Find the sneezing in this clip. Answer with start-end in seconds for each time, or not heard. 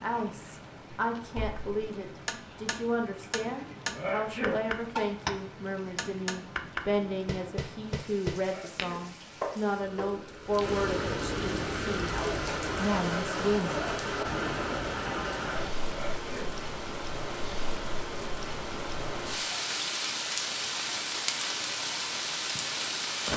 4.0-4.6, 8.4-9.1, 15.8-16.6.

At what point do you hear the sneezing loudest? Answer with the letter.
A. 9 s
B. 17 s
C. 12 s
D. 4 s
D.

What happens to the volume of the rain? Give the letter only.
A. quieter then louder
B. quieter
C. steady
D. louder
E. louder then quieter
D.